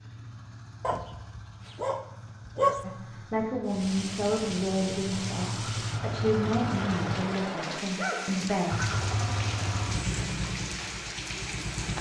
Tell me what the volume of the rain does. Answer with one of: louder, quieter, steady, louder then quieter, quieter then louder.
steady.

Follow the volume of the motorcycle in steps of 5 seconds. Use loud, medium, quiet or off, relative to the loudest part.
quiet, loud, loud.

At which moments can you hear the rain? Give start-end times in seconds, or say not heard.
3.6-11.9.